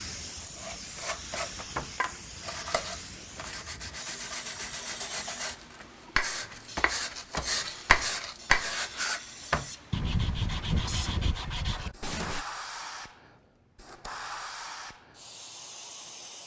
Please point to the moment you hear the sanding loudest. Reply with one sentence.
The volume of the sanding peaks at 8 seconds.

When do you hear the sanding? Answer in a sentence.
The sanding can be heard from 0.4 to 12.4 s.